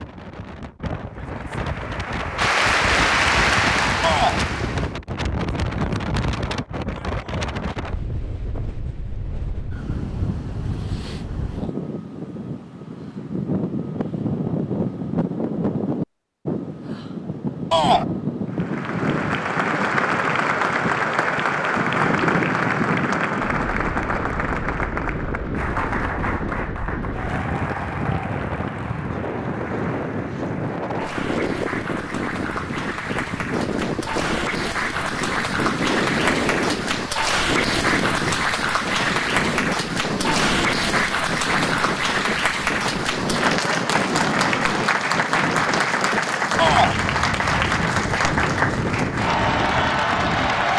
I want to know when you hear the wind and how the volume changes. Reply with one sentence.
The wind can be heard from 0.0 to 50.7 s, at a steady volume.